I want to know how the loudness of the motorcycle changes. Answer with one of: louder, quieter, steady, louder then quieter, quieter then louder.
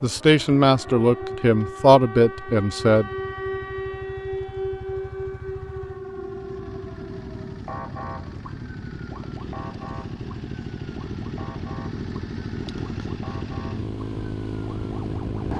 louder.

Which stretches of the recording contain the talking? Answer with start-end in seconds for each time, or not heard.
0.0-3.1.